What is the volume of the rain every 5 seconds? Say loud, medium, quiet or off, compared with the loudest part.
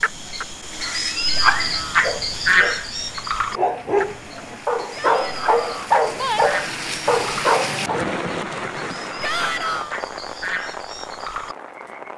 quiet, loud, medium.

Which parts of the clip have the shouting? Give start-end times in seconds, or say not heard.
1.4-2.0, 5.0-5.9, 9.2-9.9.